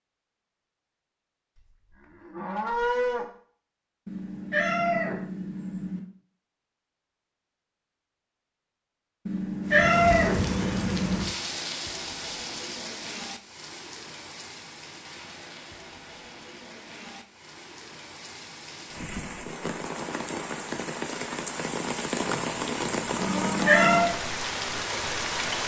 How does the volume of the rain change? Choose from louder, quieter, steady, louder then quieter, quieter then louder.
quieter then louder.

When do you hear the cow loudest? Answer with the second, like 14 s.
3 s.